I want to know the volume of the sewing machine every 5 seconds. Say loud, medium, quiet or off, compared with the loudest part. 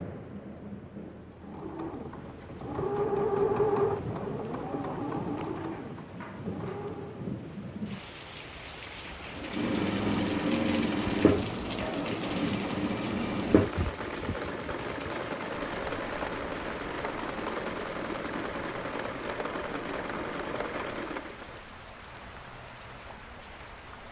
loud, medium, loud, medium, medium.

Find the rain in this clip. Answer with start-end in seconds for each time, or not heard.
0.0-24.0.